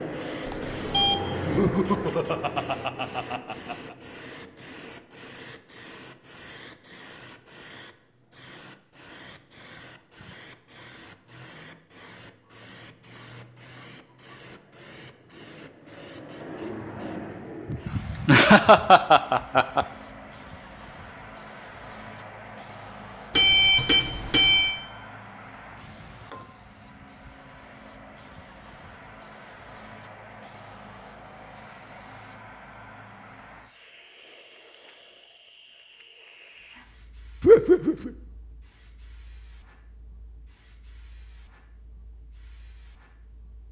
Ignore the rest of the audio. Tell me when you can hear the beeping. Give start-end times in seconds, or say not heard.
0.5-1.1, 23.3-24.8.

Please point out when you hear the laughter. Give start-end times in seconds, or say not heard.
1.4-4.0, 17.7-19.9, 37.4-38.1.